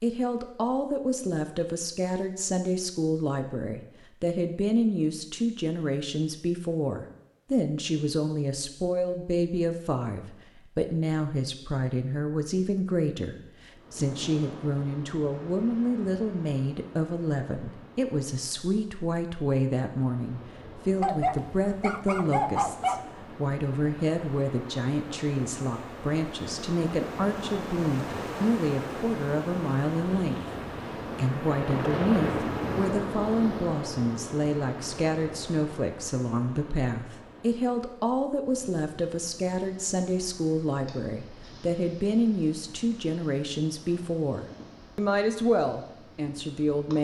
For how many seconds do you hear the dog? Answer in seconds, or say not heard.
2 s.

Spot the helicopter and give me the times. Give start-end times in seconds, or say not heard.
not heard.